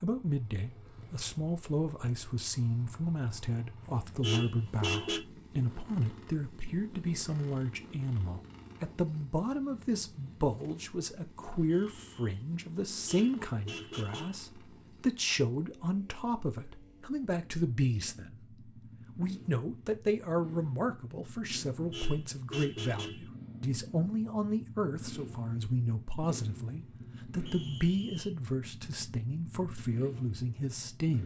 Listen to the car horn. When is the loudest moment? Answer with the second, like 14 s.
5 s.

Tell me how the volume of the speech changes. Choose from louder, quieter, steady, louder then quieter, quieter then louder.
steady.